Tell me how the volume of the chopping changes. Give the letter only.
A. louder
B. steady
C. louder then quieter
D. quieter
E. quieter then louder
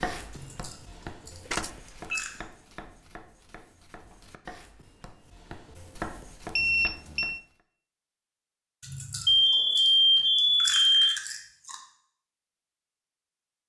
E.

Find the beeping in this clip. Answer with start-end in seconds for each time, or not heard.
1.5-2.2, 6.5-7.4, 9.2-11.2.